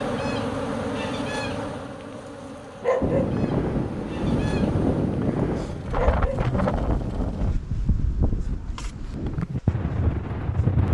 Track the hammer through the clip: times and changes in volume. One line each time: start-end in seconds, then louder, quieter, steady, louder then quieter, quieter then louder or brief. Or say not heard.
not heard.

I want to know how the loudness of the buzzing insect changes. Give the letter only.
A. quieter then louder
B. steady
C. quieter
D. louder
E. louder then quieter
C.